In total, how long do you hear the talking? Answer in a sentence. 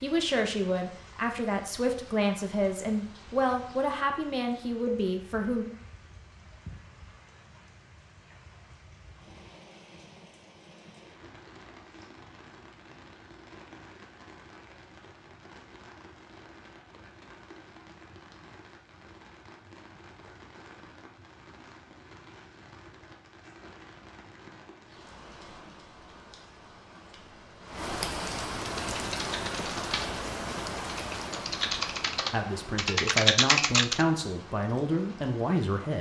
The talking can be heard for 9 seconds in total.